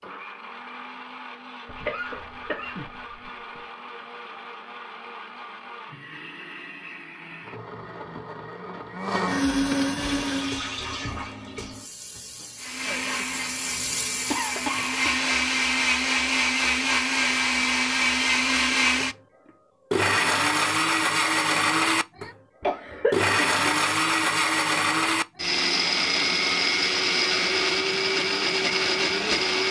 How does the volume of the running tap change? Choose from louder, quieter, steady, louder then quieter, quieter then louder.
quieter then louder.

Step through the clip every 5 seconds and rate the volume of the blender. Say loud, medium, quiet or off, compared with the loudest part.
quiet, medium, medium, loud, loud, loud.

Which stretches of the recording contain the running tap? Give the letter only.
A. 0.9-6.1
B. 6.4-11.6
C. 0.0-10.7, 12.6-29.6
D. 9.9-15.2
D.